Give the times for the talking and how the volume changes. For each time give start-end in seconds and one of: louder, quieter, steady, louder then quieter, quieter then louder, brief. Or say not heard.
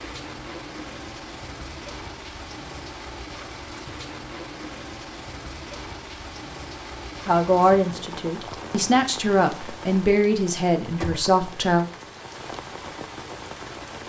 7.2-11.8 steady.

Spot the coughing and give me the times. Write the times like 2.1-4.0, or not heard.
not heard.